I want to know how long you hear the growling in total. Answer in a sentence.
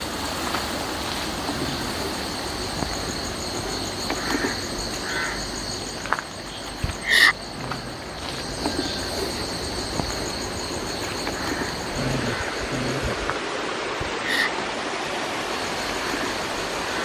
You can hear the growling for 3 seconds altogether.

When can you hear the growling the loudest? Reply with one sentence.
The loudest moment of the growling is at 12 seconds.